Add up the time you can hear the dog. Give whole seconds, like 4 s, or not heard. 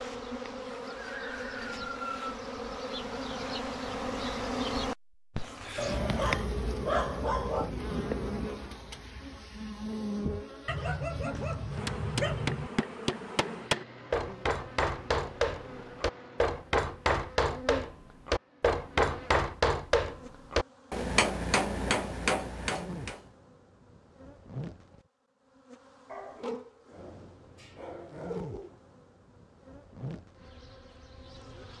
7 s.